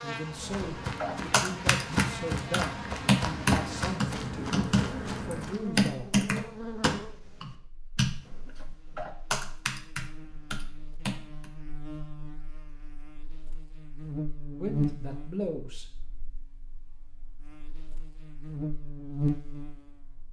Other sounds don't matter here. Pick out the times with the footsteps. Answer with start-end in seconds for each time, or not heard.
0.1-5.7.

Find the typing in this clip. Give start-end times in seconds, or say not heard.
1.0-11.5.